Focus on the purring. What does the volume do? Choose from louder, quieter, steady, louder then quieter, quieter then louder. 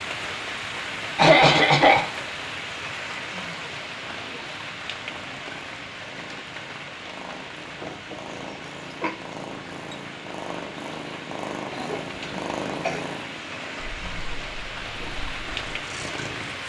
louder then quieter.